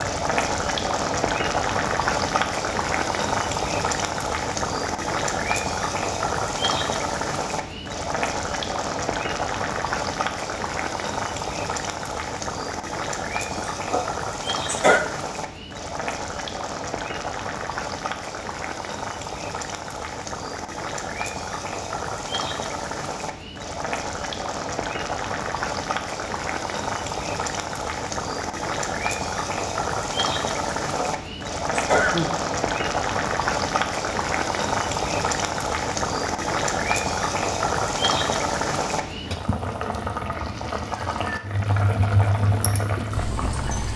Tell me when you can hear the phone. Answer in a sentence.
You can't hear the phone here.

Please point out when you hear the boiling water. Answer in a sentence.
The boiling water can be heard from 0.0 to 43.9 s.